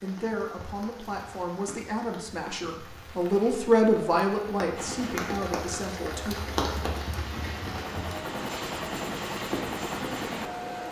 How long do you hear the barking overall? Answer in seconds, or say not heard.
not heard.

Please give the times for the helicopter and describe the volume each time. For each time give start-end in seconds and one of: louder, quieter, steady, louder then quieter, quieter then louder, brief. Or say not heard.
4.8-10.8 louder.